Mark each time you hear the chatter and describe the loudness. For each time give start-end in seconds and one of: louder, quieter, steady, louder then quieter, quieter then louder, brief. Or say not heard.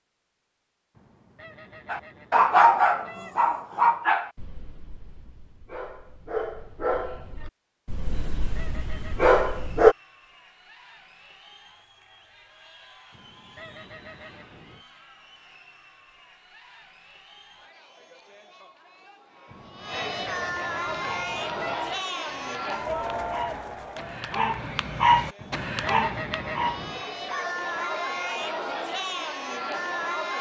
8.1-30.3 louder.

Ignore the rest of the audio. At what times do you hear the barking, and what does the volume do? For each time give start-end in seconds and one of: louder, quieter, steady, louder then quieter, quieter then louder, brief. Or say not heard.
1.9-9.9 quieter then louder
20.9-28.7 louder then quieter.